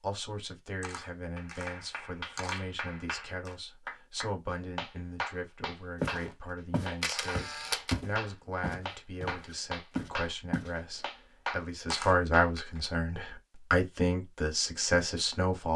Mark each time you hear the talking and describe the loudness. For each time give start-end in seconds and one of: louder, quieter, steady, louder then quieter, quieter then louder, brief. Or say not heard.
0.0-15.7 louder.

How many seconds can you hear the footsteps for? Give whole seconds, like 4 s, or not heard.
5 s.